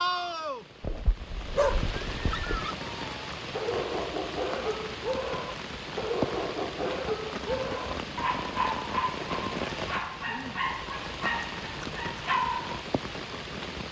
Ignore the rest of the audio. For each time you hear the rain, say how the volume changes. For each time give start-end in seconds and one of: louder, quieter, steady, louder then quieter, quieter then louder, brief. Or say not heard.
0.0-13.8 steady.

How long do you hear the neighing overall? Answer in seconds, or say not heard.
2 s.